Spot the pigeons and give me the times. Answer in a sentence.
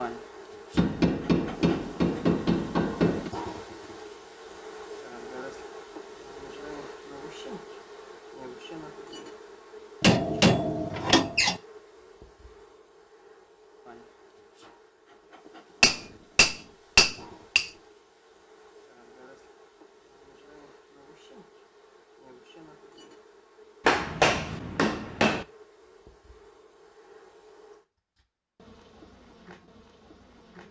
You can't hear the pigeons here.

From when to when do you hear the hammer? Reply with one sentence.
You can hear the hammer from 0.8 to 3.3 s, from 10.0 to 11.6 s, from 15.8 to 17.7 s and from 23.9 to 25.4 s.